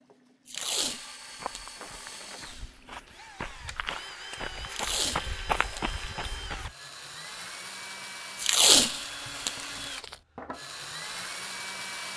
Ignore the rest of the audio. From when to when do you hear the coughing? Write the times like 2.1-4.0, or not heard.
not heard.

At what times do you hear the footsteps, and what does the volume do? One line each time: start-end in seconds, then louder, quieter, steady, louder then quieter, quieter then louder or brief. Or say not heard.
1.4-6.8 louder.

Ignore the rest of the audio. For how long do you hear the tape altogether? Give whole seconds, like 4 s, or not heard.
5 s.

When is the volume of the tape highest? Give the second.
9 s.